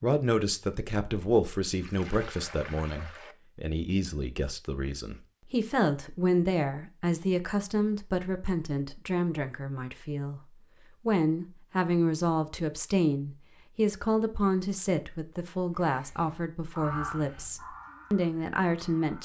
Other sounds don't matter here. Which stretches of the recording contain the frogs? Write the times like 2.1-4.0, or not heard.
not heard.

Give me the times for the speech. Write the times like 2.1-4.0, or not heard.
0.0-19.2.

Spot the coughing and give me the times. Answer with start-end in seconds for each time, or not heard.
not heard.